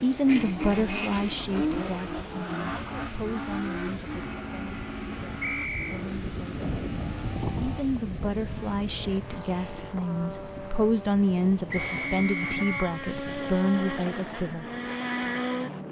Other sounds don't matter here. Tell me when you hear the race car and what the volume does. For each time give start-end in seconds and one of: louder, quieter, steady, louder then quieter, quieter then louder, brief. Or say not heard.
0.0-15.8 quieter then louder.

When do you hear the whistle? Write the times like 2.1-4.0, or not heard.
5.4-6.0, 11.7-12.9.